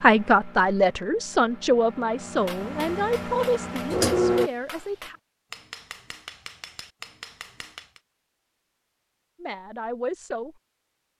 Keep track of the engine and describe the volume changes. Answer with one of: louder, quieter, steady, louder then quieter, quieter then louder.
louder.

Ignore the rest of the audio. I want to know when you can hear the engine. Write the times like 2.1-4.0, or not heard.
0.0-4.5.